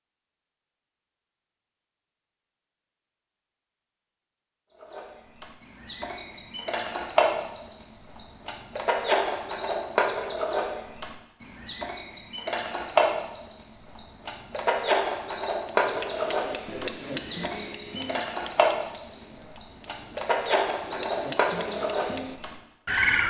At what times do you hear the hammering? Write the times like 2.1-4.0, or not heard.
15.7-22.6.